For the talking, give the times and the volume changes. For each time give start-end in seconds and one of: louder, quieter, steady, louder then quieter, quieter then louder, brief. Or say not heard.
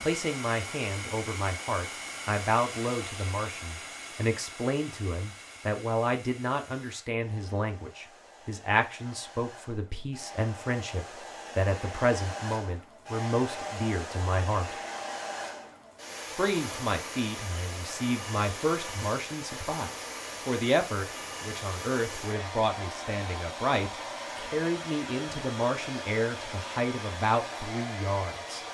0.0-14.8 steady
16.4-28.6 steady.